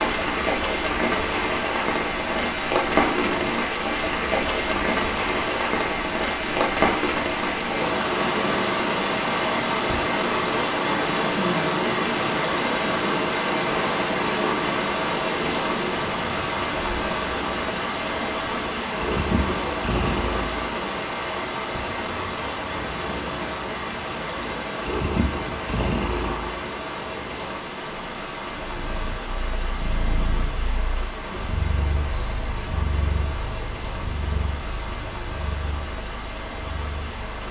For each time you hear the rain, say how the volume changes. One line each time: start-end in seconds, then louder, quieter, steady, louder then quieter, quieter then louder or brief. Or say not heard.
0.0-37.4 quieter.